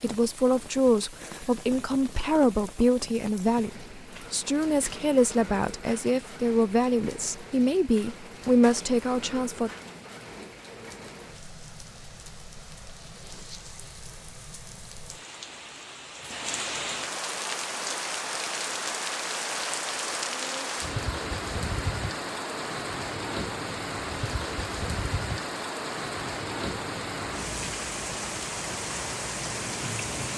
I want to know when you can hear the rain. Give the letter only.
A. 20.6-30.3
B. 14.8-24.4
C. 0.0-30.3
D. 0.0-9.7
C.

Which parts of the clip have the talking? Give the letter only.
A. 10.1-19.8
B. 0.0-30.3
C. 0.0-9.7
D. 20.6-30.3
C.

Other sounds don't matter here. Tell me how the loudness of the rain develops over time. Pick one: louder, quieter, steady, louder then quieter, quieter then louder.
louder.